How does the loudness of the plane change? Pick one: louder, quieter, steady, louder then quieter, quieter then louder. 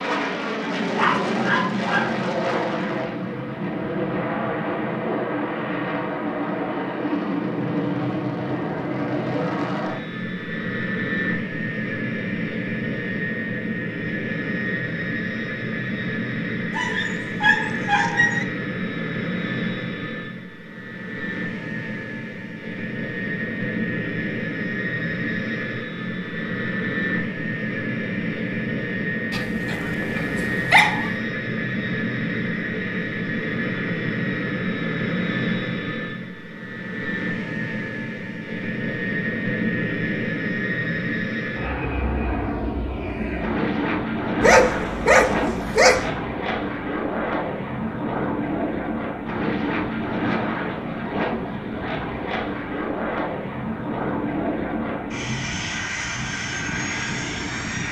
steady.